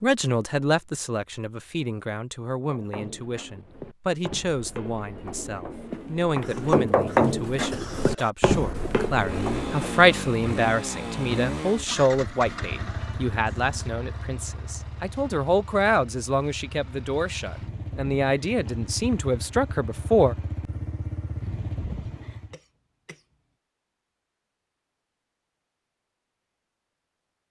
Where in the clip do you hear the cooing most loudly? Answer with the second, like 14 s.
7 s.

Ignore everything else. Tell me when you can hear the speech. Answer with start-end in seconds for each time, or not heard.
0.0-20.4.